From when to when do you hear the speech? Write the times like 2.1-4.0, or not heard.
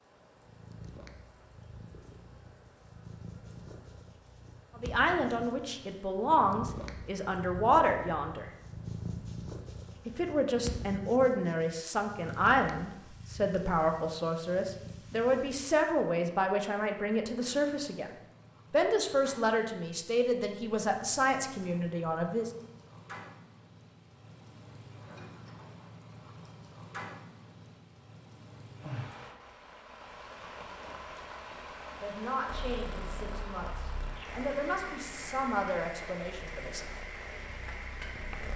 4.8-8.4, 10.1-18.1, 18.7-22.5, 31.9-36.9.